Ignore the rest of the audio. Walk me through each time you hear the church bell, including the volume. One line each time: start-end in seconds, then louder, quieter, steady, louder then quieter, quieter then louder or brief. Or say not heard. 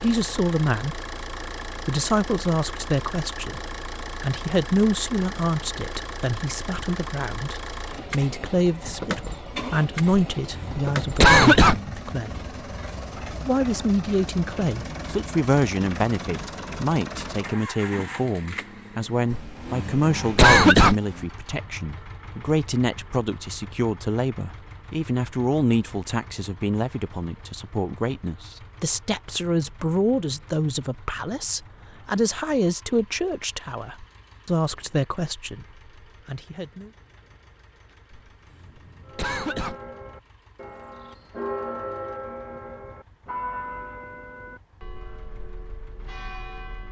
39.0-46.8 louder then quieter.